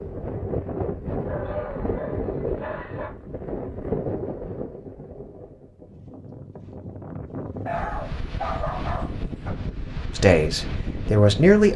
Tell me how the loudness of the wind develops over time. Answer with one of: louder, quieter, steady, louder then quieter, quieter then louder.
quieter then louder.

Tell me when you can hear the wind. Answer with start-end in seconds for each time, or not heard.
0.0-11.7.